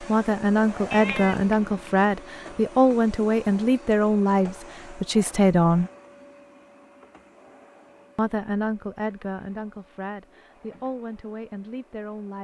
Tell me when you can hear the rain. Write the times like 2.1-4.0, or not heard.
not heard.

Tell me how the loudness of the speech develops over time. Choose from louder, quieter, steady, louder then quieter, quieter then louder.
quieter.